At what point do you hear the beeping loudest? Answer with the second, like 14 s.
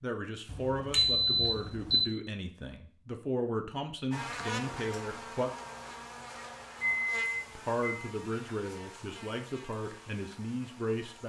1 s.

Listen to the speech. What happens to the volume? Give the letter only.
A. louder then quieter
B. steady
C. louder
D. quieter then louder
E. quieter
B.